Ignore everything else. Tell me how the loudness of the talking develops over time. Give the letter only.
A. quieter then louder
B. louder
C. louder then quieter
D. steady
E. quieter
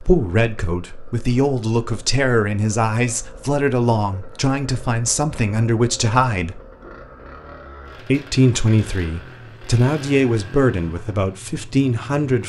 D.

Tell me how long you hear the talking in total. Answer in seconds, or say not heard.
11 s.